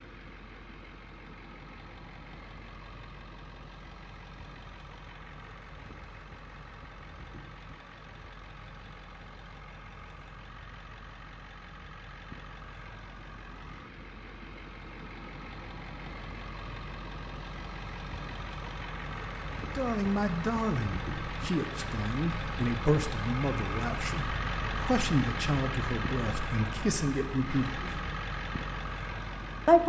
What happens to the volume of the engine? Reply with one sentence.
The loudness of the engine goes up.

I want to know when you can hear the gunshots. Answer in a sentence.
You can't hear the gunshots here.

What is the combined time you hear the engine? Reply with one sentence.
The engine can be heard for 30 seconds in total.